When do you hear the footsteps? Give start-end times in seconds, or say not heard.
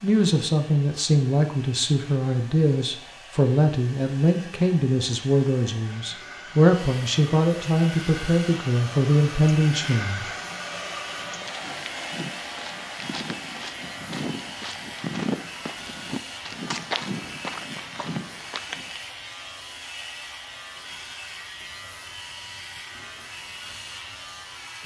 11.2-19.0.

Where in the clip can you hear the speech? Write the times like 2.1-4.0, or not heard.
0.0-10.3.